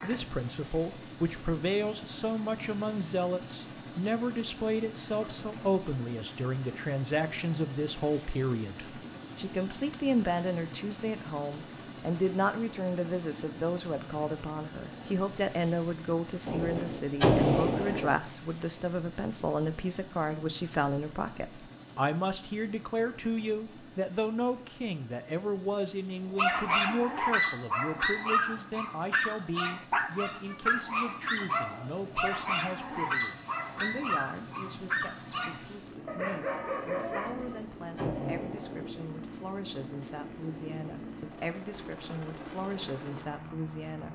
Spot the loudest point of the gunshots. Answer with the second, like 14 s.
17 s.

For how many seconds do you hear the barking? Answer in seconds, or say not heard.
11 s.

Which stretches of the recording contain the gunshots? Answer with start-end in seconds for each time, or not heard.
16.4-18.1, 37.2-38.9.